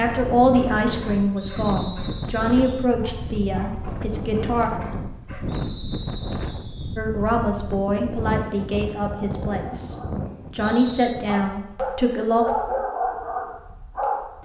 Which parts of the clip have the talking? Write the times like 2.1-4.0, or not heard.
0.0-4.7, 7.0-9.9, 10.6-12.4.